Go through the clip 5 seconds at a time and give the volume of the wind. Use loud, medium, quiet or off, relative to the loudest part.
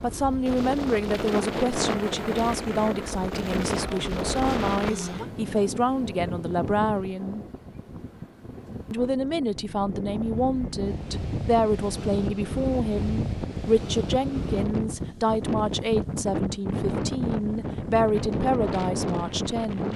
loud, medium, loud, loud.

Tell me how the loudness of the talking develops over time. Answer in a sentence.
The loudness of the talking stays about the same.